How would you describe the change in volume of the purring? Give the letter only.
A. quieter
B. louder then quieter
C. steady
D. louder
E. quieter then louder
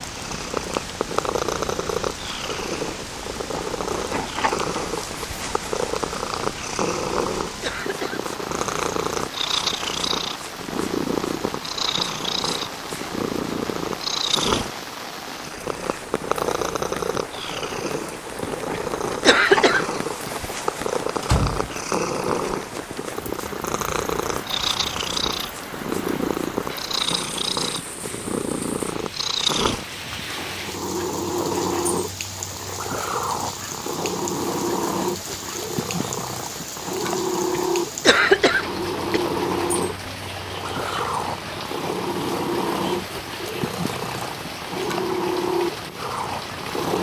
C.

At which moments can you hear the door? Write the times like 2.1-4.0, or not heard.
21.2-22.1.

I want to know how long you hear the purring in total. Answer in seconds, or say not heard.
47 s.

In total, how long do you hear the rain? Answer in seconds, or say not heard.
47 s.